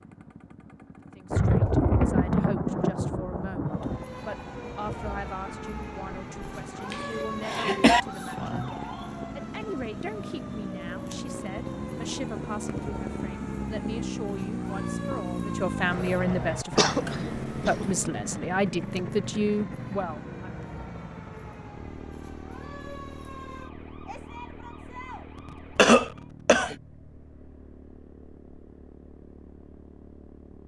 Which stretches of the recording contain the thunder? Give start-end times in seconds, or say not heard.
1.3-4.0.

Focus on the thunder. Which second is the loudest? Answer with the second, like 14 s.
2 s.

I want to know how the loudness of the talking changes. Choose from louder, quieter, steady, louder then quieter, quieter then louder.
louder.